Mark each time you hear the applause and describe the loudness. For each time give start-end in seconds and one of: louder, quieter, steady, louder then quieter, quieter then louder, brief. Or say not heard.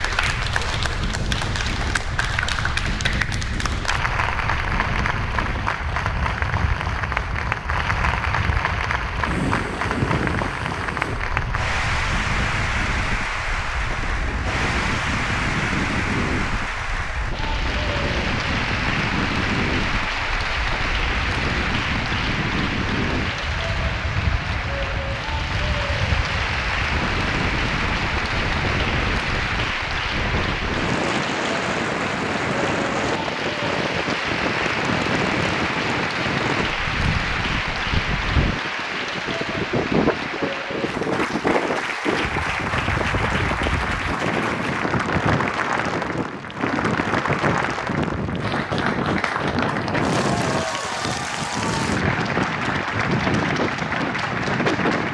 0.0-55.0 steady.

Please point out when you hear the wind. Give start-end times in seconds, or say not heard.
0.0-55.0.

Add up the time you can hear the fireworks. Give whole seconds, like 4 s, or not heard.
not heard.